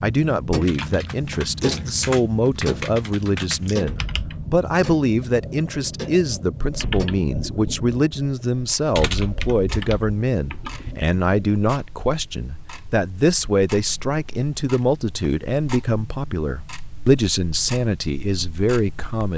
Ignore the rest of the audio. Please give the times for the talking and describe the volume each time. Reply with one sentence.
The talking can be heard from 0.0 to 19.3 s, at a steady volume.